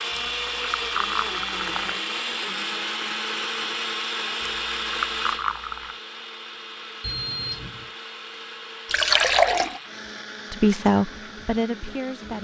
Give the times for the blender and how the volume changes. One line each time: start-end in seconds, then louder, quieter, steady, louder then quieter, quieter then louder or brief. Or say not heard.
0.0-12.3 quieter.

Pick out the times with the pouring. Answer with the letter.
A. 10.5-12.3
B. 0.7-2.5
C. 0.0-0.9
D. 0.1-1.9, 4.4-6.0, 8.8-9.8
D.